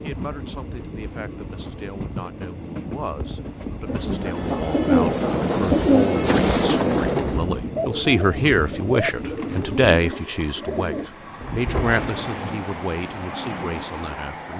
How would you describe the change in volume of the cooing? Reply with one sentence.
The loudness of the cooing goes down.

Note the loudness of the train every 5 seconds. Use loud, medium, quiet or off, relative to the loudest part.
medium, loud, medium.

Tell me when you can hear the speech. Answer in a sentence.
You can hear the speech from 0.0 to 14.5 s.